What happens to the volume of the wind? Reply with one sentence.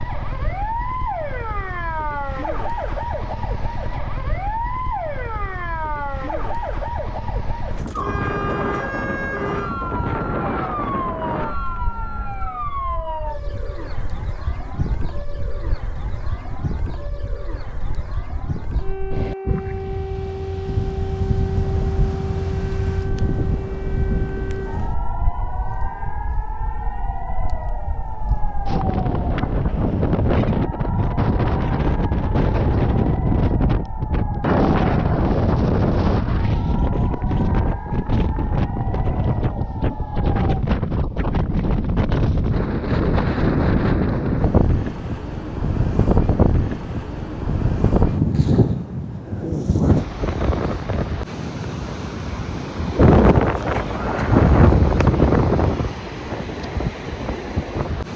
The volume of the wind goes up.